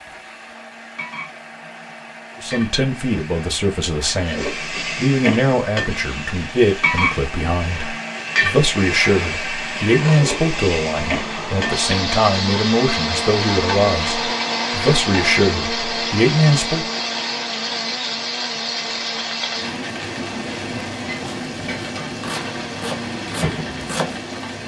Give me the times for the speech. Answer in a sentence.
You can hear the speech from 2.4 to 16.9 s.